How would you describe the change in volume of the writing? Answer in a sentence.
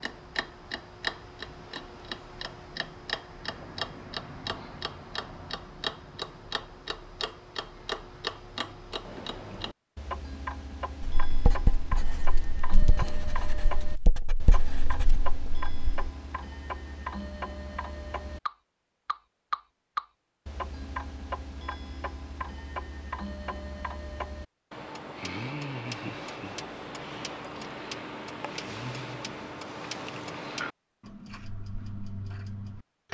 The volume of the writing goes down, then up.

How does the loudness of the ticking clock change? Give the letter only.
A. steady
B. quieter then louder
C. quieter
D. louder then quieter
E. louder
A.